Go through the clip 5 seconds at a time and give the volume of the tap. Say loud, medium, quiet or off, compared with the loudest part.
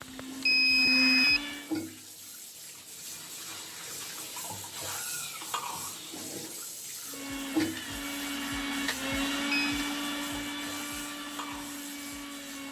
loud, loud, medium.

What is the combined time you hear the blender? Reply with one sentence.
You can hear the blender for 7 seconds altogether.